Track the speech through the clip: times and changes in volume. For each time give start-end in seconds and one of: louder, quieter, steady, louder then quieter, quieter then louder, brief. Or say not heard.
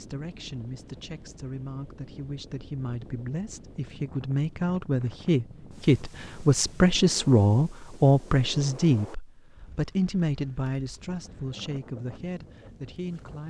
0.0-13.4 louder then quieter.